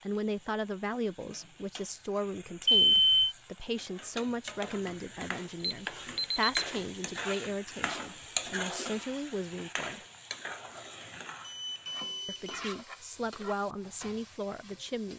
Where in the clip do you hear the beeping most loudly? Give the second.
3 s.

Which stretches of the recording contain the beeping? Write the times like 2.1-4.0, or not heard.
2.6-3.4, 5.6-6.7, 11.4-12.6.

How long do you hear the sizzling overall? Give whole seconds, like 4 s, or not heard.
15 s.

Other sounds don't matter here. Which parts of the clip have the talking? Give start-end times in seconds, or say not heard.
0.0-10.0, 12.2-15.1.